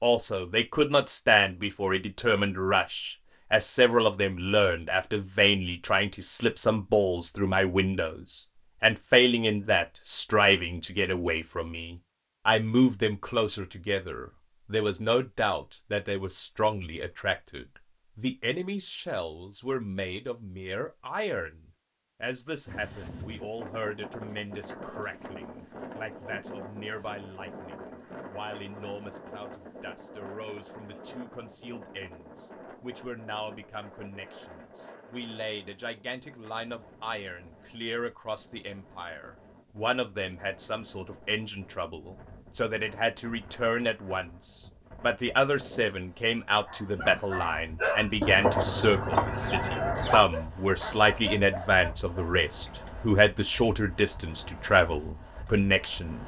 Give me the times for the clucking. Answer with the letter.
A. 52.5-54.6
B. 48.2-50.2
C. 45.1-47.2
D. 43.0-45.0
B.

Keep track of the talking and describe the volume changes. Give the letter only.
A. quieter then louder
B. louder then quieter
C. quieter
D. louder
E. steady
A.